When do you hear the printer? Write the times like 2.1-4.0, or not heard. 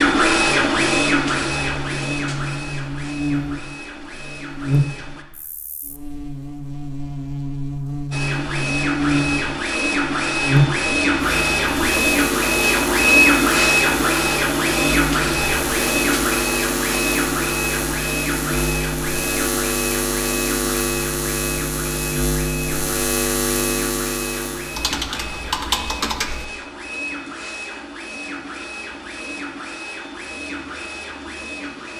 0.0-5.2, 8.1-31.9.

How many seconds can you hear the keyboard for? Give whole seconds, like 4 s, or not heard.
2 s.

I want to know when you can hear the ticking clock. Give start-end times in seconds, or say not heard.
not heard.